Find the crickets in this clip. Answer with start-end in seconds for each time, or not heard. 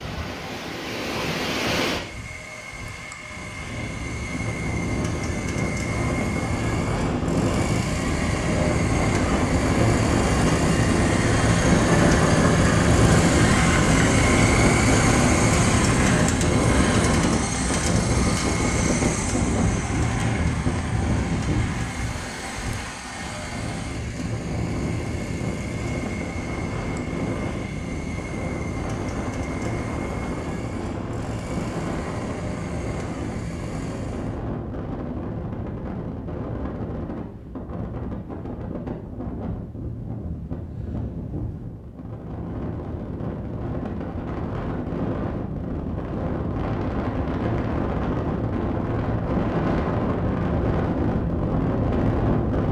not heard.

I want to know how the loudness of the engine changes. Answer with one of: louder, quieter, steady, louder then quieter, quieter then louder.
louder then quieter.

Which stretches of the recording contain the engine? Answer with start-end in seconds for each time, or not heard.
1.9-34.4.